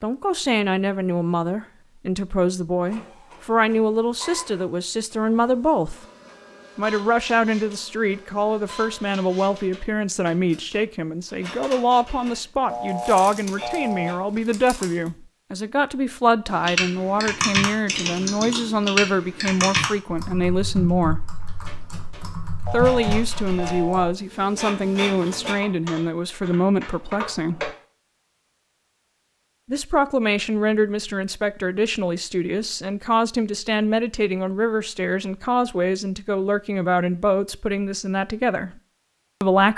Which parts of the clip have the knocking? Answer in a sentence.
The knocking can't be heard in this clip.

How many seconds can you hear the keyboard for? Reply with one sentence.
You can hear the keyboard for 11 seconds altogether.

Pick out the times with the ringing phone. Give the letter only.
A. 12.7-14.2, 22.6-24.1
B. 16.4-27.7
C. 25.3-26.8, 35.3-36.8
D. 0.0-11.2
A.